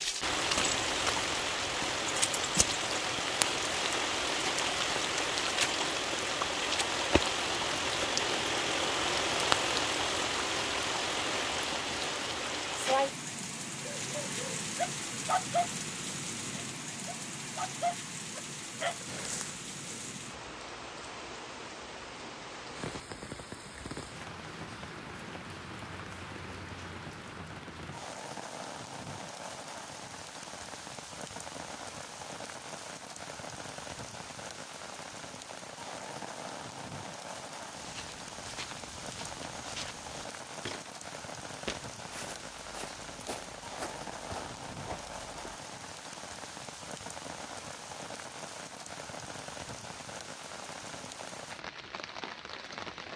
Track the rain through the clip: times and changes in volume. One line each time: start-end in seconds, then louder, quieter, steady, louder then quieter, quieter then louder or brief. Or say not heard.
0.0-53.1 quieter.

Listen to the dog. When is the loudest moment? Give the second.
15 s.